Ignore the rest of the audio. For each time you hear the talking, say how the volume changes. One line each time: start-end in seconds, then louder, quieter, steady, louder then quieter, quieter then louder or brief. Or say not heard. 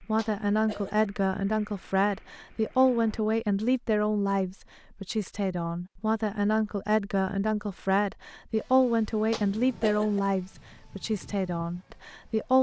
0.0-12.5 steady.